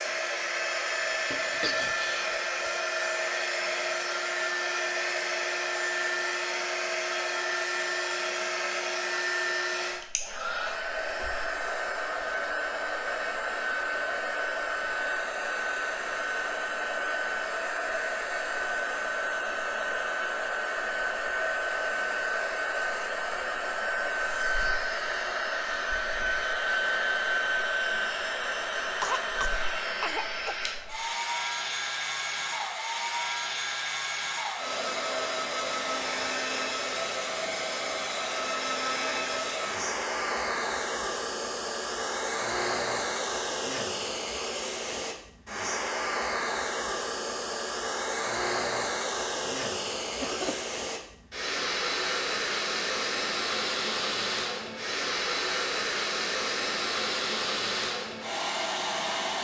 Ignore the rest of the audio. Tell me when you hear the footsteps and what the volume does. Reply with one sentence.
The footsteps can't be heard in this clip.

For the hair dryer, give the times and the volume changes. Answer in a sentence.
The hair dryer can be heard from 0.0 to 59.3 s, at a steady volume.